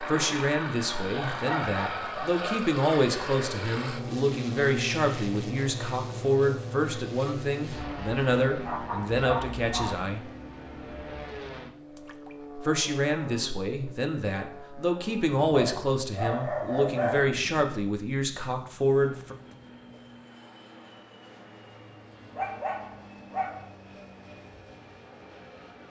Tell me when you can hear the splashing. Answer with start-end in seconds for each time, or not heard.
11.9-12.3.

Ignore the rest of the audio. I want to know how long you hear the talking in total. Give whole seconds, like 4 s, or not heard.
17 s.